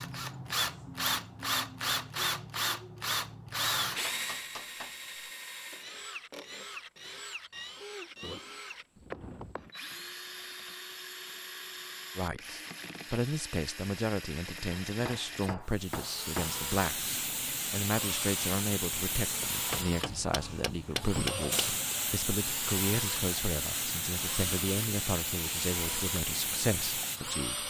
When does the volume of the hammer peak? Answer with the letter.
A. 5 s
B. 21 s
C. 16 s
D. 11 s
B.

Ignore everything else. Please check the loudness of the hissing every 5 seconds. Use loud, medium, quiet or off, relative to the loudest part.
off, off, off, loud, loud, loud.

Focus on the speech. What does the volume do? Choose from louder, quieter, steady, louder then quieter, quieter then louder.
steady.